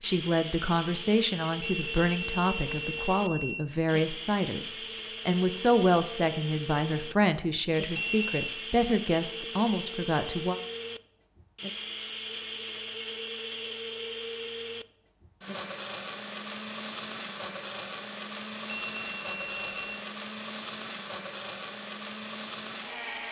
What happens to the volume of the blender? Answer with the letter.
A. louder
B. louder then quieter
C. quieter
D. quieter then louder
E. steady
E.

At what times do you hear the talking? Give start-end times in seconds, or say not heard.
0.0-10.6.